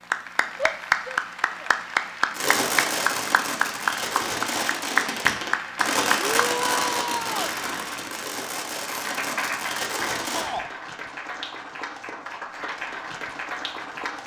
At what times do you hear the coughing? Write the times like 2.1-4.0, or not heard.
not heard.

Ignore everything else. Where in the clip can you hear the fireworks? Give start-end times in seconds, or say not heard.
2.3-10.5.